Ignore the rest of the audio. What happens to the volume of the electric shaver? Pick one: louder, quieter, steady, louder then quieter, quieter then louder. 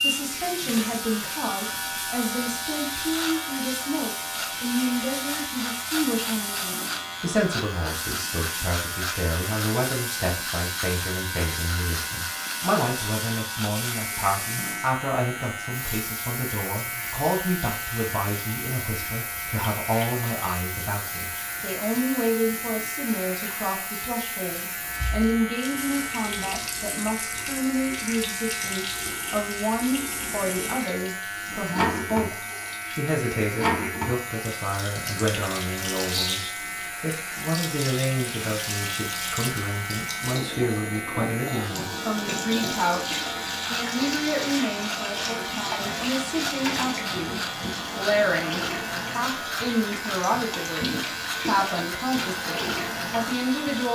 steady.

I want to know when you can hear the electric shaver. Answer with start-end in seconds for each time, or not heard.
0.0-53.8.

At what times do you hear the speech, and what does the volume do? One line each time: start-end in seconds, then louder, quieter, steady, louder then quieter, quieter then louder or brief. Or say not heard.
0.0-53.8 steady.